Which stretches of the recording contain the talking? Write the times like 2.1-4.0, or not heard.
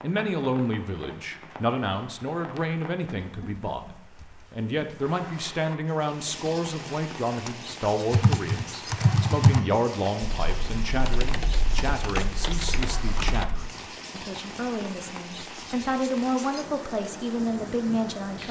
0.0-18.4.